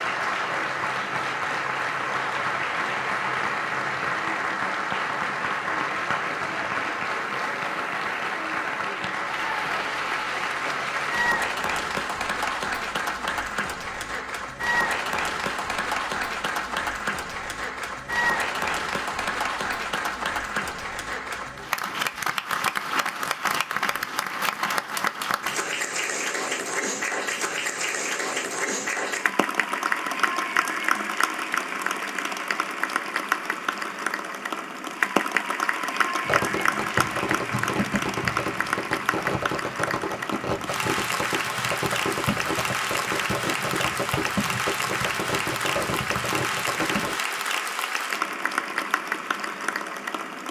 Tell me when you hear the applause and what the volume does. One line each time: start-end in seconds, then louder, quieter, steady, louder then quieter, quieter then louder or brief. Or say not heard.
0.0-50.4 steady.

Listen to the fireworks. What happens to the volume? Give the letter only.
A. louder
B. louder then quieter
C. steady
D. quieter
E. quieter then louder
C.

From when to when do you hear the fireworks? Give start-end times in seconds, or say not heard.
36.2-47.1.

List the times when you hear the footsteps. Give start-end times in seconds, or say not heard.
not heard.